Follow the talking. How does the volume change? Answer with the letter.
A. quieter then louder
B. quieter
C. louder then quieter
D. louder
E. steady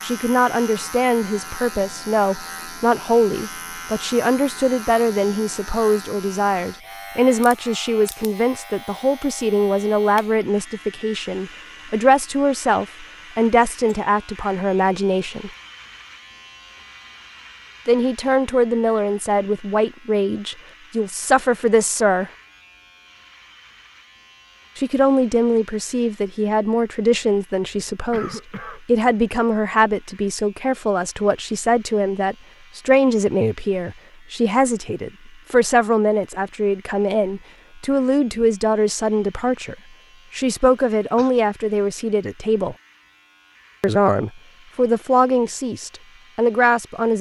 E.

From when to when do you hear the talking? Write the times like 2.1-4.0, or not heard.
0.0-15.5, 17.9-22.3, 24.8-42.8, 43.8-47.1.